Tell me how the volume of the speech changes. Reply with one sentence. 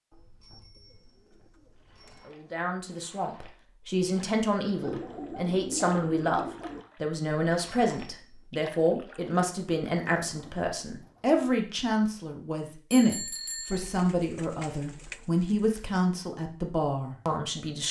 The volume of the speech stays about the same.